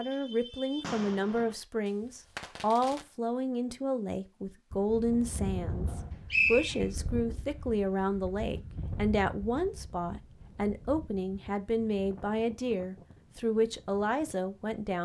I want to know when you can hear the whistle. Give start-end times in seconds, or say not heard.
6.3-6.8.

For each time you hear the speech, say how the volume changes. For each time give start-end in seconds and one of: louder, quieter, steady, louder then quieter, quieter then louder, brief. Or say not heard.
0.0-15.0 steady.